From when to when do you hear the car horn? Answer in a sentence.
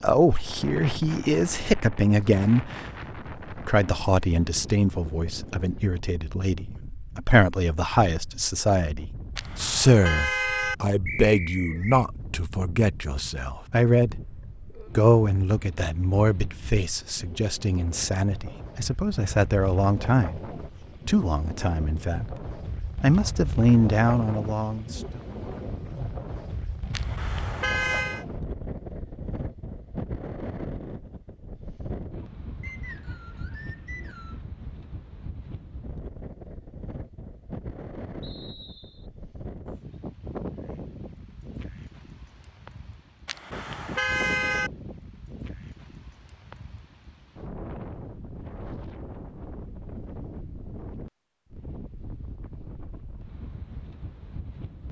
You can hear the car horn from 9.3 to 10.8 s, from 26.9 to 28.2 s and from 43.2 to 44.7 s.